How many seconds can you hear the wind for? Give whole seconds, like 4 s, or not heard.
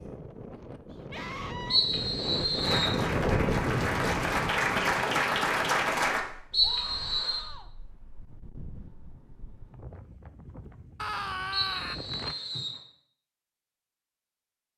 12 s.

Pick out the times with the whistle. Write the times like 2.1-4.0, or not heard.
1.7-3.0, 6.5-7.5, 11.5-12.8.